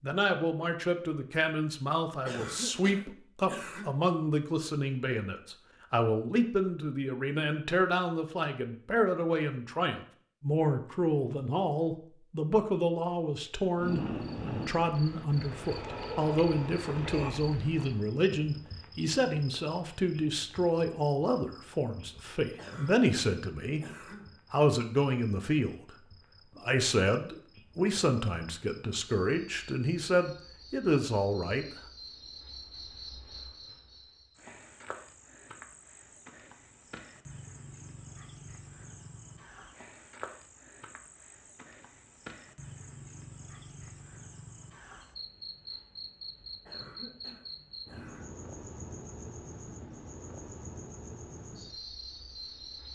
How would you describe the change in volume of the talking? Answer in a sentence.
The volume of the talking stays about the same.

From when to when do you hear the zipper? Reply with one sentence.
You can't hear the zipper here.